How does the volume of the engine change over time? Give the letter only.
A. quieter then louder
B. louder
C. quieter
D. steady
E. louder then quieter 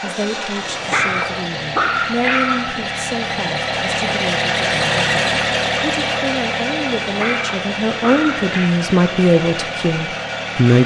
E.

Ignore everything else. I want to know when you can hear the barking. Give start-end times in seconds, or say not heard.
0.9-2.7, 7.2-8.7.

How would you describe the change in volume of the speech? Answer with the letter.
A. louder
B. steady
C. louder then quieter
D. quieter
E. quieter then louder
A.